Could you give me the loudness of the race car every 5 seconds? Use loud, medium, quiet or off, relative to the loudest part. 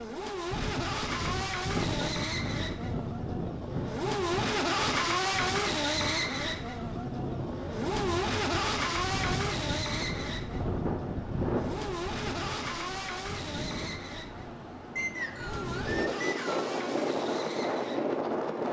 loud, loud, medium, medium.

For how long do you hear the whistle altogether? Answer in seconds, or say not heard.
2 s.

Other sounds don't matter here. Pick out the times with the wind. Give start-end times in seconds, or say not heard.
0.0-18.6.